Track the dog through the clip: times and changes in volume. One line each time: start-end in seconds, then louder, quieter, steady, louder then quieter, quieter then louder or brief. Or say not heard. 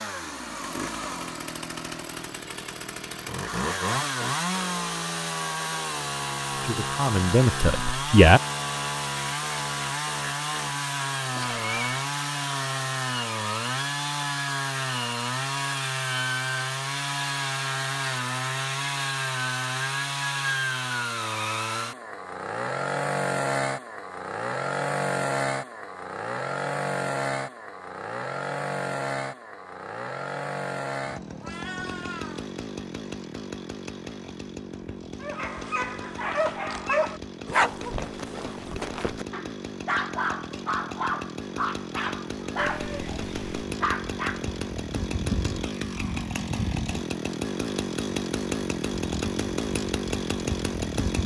35.2-44.5 steady.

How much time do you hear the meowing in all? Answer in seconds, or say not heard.
3 s.